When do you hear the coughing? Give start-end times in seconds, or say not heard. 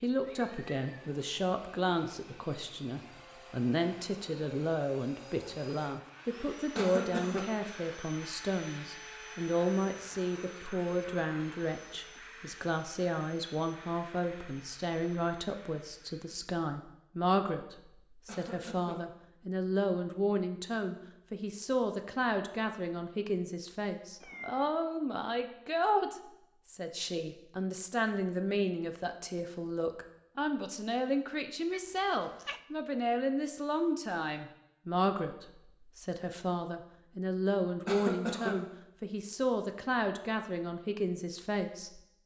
6.8-7.5, 18.2-18.9, 37.9-38.5.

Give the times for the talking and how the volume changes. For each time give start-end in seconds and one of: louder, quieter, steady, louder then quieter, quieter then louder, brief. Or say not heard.
0.0-42.0 steady.